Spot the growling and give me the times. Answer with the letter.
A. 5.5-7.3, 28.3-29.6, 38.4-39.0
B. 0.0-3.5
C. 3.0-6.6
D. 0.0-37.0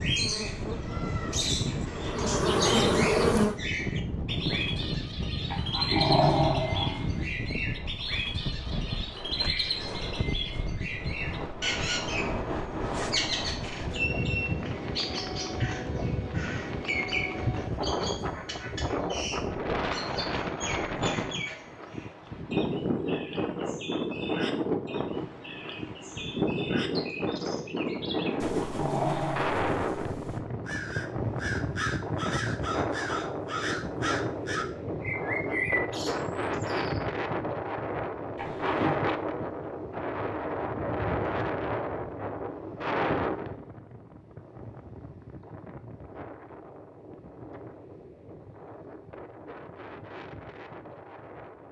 A.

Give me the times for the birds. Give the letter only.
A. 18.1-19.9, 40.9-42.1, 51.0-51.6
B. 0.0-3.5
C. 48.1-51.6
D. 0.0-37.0
D.